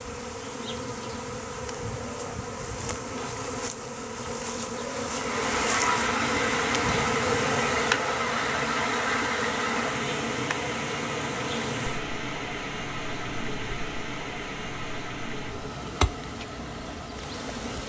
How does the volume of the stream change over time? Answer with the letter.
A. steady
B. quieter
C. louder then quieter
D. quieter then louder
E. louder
B.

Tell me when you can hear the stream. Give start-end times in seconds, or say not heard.
5.0-17.8.